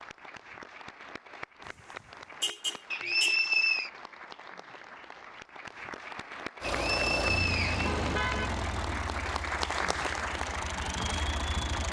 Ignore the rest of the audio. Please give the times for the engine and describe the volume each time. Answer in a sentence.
You can hear the engine from 6.6 to 11.8 s, getting quieter then louder.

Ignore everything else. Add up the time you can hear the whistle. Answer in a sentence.
The whistle can be heard for 2 seconds in total.